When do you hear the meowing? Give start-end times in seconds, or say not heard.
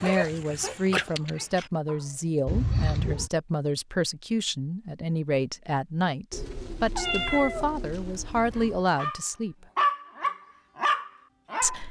2.5-3.3, 6.3-8.8.